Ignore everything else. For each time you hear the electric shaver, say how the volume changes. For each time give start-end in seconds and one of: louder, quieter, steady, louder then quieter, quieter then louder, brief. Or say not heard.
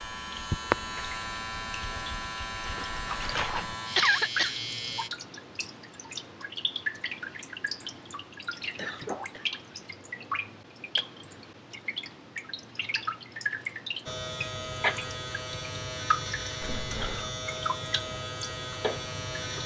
0.0-5.1 steady
14.1-19.6 steady.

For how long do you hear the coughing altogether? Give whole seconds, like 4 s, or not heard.
2 s.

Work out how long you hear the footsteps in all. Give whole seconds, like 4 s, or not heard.
not heard.